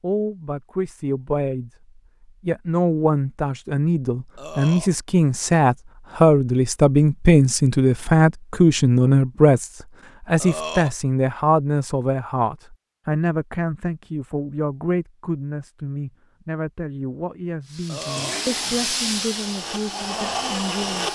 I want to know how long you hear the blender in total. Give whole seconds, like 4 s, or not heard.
3 s.